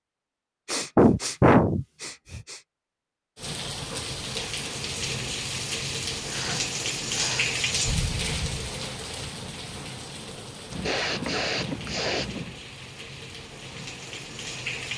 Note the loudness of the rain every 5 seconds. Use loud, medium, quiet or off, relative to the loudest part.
loud, loud, medium.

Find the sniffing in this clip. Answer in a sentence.
The sniffing can be heard from 0.7 to 2.5 s, from 6.2 to 7.5 s and from 10.7 to 12.6 s.